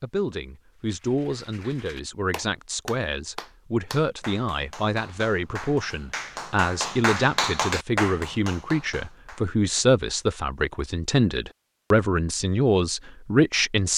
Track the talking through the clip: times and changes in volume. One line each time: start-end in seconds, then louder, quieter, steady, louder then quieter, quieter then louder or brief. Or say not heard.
0.0-13.9 louder.